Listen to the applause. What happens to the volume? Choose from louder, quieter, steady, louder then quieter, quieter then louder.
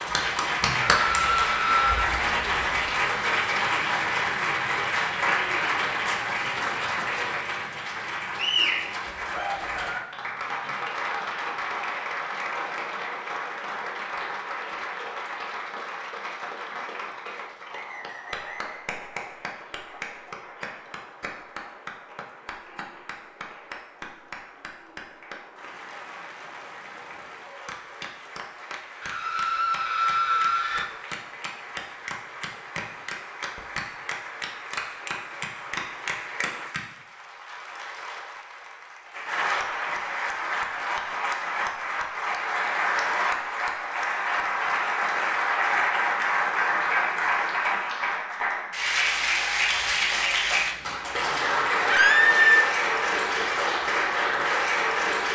quieter then louder.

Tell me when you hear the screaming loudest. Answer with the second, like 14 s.
52 s.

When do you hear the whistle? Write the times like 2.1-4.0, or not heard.
17.6-18.9.